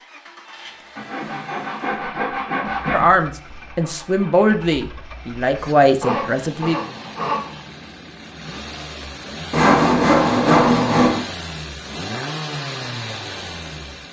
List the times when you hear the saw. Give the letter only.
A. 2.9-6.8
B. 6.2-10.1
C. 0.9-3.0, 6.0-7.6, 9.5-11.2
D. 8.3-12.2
C.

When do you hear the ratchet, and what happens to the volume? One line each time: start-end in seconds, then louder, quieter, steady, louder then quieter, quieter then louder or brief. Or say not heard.
not heard.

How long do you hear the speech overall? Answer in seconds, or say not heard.
4 s.